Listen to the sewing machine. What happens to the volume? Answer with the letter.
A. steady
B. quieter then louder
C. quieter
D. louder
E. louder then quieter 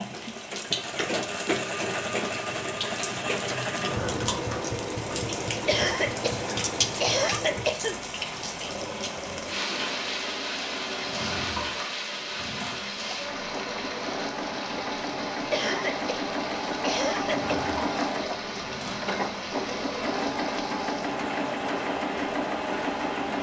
B.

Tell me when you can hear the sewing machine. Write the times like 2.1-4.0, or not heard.
0.0-23.3.